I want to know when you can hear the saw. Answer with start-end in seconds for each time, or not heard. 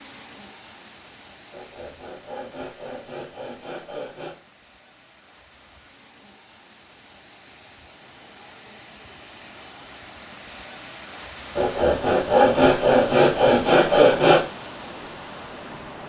1.5-4.3, 11.6-14.4.